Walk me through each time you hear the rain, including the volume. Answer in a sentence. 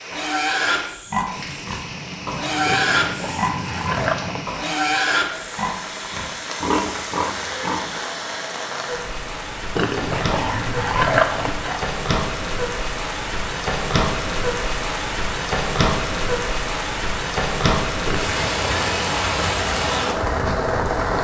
You can hear the rain from 0.0 to 21.1 s, getting louder.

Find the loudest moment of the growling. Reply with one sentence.
The volume of the growling peaks at 11 seconds.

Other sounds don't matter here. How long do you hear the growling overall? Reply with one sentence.
The growling can be heard for 5 seconds in total.